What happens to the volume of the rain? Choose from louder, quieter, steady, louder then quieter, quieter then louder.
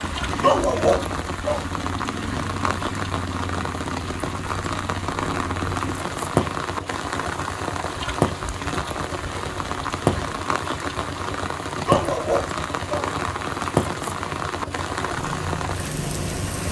steady.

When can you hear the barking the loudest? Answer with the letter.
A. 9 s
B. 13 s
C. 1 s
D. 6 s
C.